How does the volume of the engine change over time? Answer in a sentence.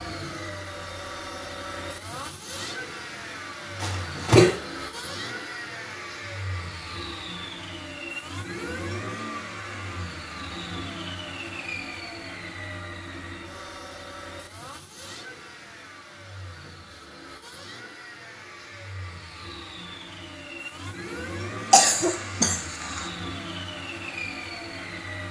The volume of the engine goes down, then up.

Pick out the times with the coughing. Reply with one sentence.
You can hear the coughing from 3.8 to 4.5 s and from 21.7 to 23.1 s.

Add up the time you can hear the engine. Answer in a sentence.
You can hear the engine for 25 seconds altogether.